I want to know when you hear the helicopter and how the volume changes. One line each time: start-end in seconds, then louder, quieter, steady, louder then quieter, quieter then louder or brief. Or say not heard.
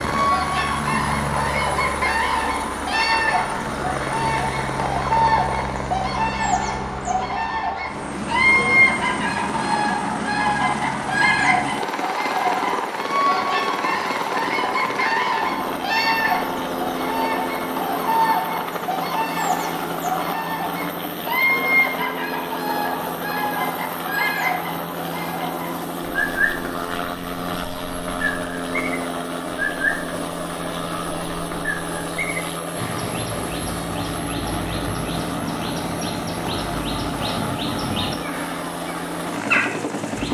0.0-40.2 steady.